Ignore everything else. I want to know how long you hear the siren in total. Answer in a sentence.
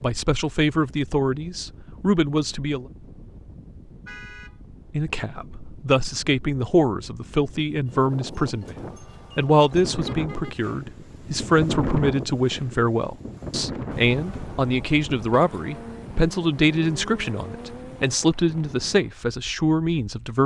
You can't hear the siren here.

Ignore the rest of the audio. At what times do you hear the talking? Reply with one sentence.
You can hear the talking from 0.0 to 2.9 s and from 4.9 to 20.4 s.